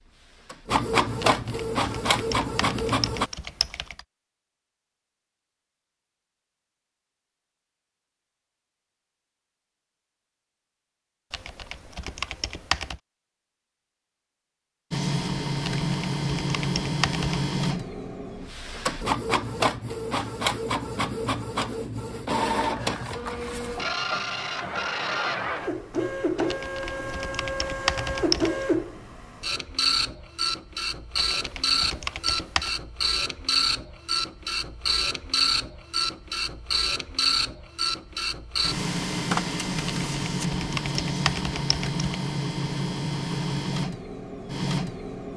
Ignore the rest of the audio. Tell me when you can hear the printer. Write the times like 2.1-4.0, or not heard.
0.0-3.3, 14.9-45.3.